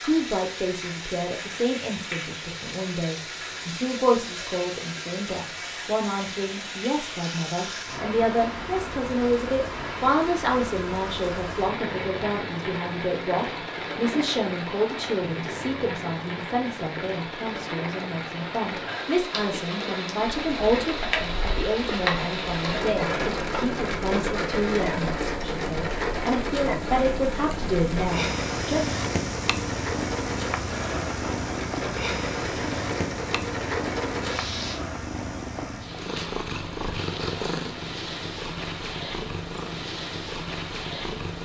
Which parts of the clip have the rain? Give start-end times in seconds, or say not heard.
0.0-34.8.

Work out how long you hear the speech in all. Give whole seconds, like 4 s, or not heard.
29 s.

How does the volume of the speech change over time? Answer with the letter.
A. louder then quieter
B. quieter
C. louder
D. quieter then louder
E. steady
E.